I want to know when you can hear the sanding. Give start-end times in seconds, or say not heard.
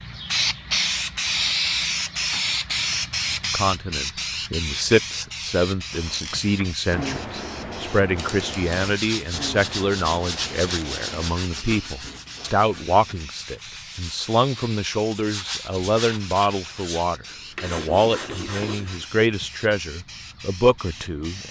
8.5-19.1.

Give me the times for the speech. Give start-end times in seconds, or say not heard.
3.5-21.4.